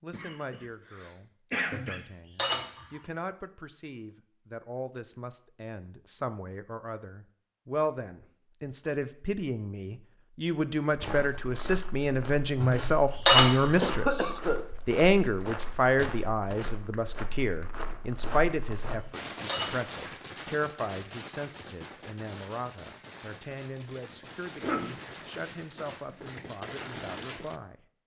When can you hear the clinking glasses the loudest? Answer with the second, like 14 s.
13 s.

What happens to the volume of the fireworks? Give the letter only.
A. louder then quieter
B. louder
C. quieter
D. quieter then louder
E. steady
D.